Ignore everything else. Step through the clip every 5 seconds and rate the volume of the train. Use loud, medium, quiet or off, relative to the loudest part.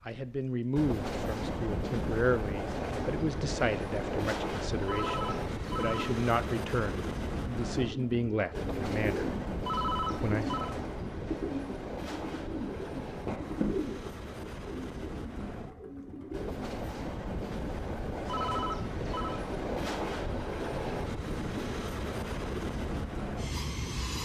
loud, loud, medium, loud, loud.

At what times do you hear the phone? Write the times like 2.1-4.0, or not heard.
4.8-6.1, 9.7-10.8, 18.2-19.4.